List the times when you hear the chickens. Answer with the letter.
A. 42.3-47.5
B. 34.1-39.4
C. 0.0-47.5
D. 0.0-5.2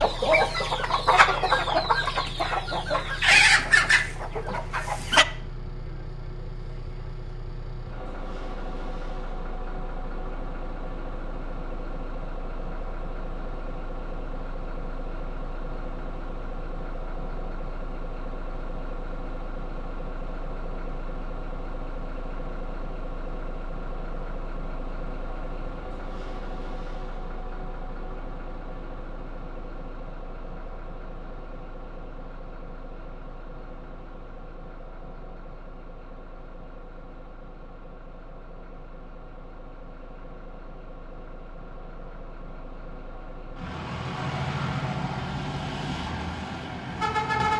D.